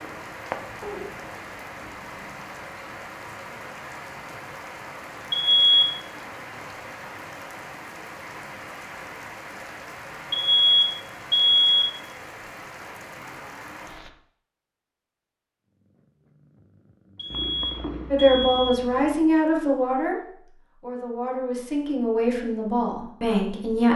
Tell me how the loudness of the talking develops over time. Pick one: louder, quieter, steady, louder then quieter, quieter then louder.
quieter then louder.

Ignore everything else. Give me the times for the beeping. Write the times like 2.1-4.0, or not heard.
5.3-6.0, 10.3-11.9, 17.1-18.8.